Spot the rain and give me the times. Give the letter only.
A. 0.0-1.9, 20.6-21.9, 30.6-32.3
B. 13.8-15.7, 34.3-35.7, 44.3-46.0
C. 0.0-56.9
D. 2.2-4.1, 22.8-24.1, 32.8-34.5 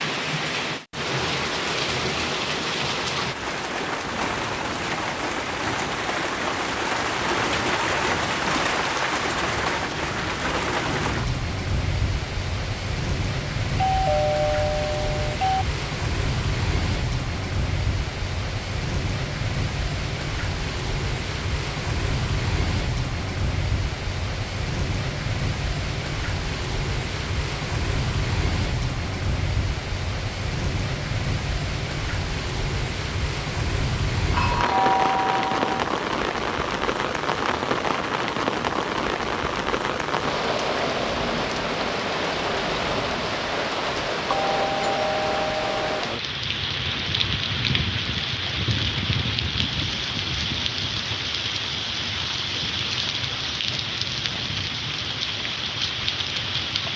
C.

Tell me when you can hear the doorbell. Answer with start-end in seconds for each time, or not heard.
13.8-15.7, 34.3-35.7, 44.3-46.0.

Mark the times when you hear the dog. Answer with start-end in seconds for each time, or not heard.
not heard.